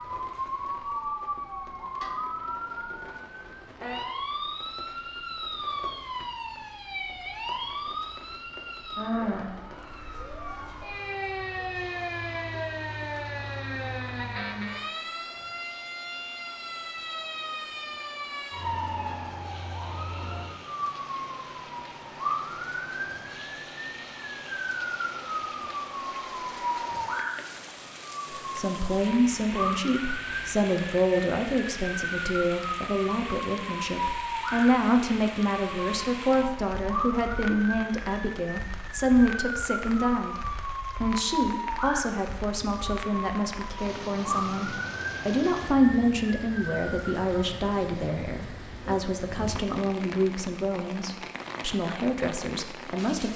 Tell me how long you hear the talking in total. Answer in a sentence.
The talking can be heard for 25 seconds in total.